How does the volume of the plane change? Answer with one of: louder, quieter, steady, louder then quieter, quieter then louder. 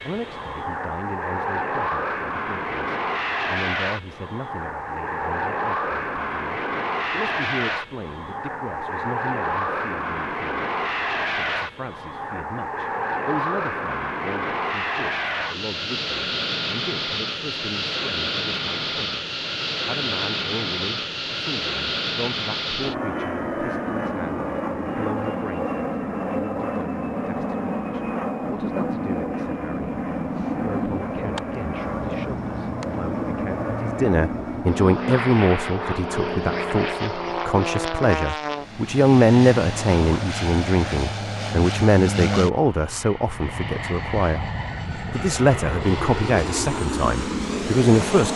steady.